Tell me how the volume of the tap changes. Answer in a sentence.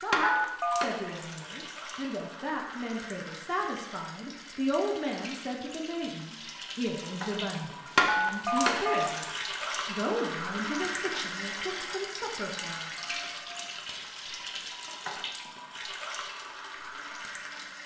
The loudness of the tap goes up, then down.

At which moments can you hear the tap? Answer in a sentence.
You can hear the tap from 0.0 to 17.8 s.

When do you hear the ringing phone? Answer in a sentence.
The ringing phone can be heard from 0.2 to 0.8 s, from 8.1 to 9.1 s and from 12.8 to 13.6 s.